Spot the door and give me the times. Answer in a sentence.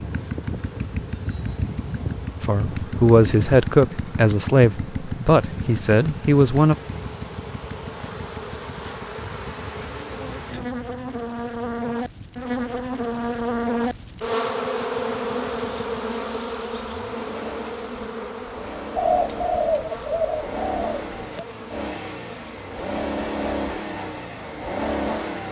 You can't hear the door here.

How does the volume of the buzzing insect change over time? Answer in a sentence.
The loudness of the buzzing insect goes up, then down.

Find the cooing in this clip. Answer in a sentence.
You can hear the cooing from 18.9 to 21.4 s.